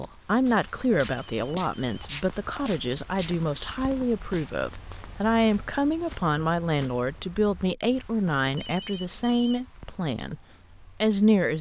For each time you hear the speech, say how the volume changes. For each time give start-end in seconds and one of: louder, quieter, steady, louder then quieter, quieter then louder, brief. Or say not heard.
0.0-10.4 steady
11.0-11.5 brief.